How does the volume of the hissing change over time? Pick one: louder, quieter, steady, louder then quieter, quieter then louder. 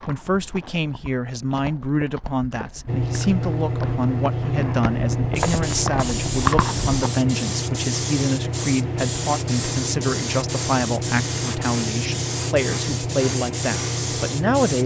steady.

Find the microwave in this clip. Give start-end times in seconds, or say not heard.
not heard.